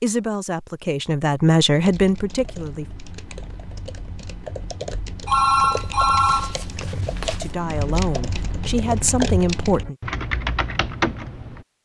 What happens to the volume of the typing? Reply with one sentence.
The volume of the typing goes up.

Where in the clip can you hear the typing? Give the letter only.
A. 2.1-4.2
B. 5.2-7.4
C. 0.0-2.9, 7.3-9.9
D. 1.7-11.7
D.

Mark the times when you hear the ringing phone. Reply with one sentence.
The ringing phone can be heard from 5.2 to 7.4 s.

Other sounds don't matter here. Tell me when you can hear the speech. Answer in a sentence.
You can hear the speech from 0.0 to 2.9 s and from 7.3 to 9.9 s.